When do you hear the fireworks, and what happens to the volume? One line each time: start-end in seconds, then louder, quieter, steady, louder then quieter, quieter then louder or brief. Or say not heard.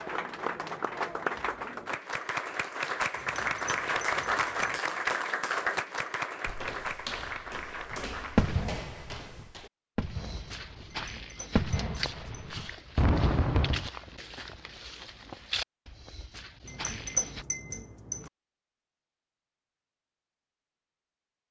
7.9-13.9 quieter then louder.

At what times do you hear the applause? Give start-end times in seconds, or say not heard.
0.0-8.7.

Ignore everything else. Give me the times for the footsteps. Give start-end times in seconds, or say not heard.
6.5-17.4.